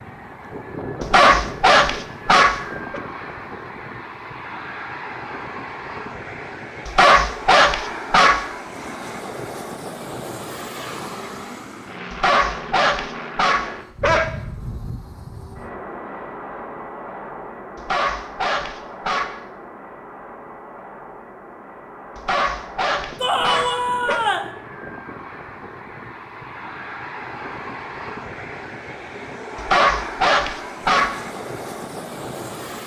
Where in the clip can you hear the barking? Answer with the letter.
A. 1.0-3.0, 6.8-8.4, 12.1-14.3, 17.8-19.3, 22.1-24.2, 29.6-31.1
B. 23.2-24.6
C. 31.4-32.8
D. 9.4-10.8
A.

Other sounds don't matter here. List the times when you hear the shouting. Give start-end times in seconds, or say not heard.
23.2-24.6.